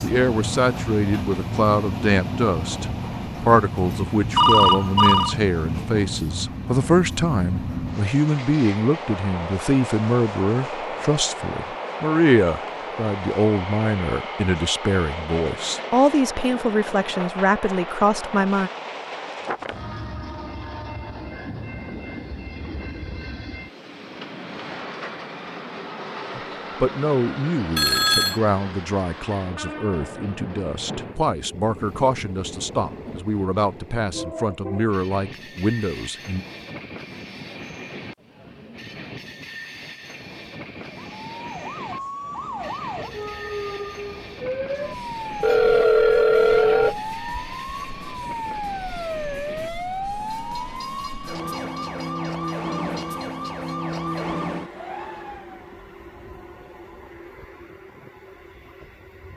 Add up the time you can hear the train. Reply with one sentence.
The train can be heard for 59 seconds in total.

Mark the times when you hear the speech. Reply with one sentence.
You can hear the speech from 0.0 to 18.7 s and from 26.4 to 36.5 s.